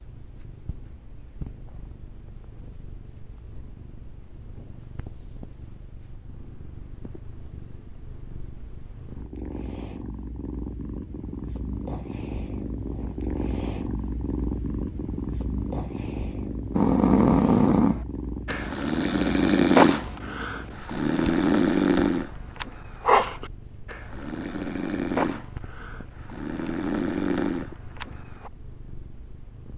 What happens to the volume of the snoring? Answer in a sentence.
The volume of the snoring goes down.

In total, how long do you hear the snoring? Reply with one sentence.
The snoring can be heard for 12 seconds in total.